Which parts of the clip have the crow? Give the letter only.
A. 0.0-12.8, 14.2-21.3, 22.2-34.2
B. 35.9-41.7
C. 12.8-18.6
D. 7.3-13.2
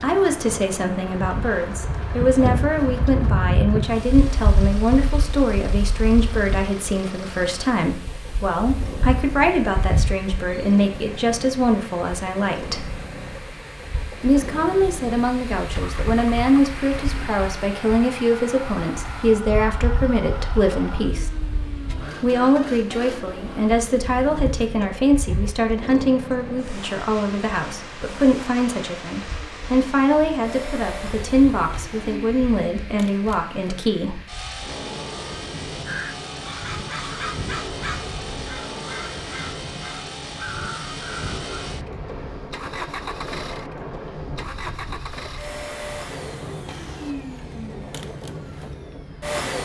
B.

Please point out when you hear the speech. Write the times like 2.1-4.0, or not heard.
0.0-12.8, 14.2-21.3, 22.2-34.2.